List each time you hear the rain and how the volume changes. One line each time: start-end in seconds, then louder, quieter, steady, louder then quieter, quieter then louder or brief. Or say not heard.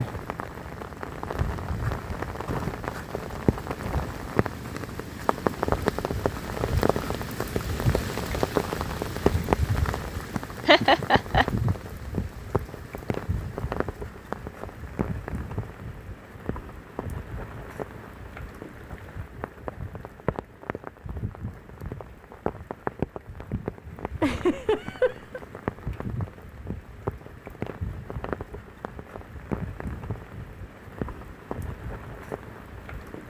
0.0-33.2 quieter.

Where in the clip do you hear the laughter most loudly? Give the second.
11 s.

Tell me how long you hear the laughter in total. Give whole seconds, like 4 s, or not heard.
2 s.